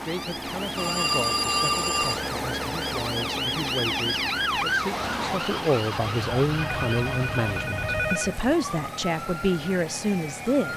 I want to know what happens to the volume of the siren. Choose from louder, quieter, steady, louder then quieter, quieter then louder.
louder then quieter.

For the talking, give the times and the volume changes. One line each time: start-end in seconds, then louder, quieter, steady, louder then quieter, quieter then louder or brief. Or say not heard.
0.0-10.7 louder.